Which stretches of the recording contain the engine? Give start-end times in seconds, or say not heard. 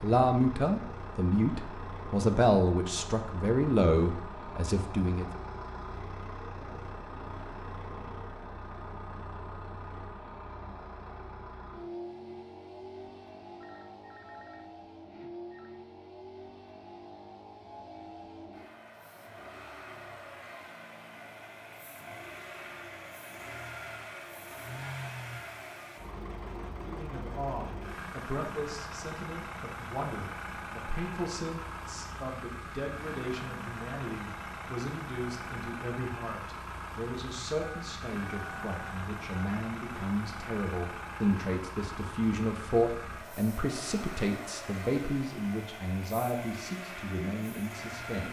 0.0-48.2.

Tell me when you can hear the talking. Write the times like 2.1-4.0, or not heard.
0.0-5.2, 26.8-48.2.